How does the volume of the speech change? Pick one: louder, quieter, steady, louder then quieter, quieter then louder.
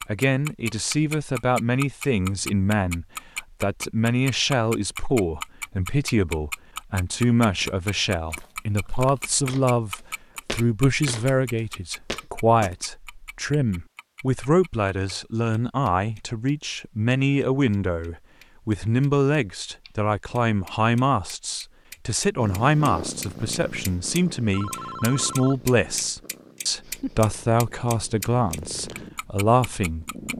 steady.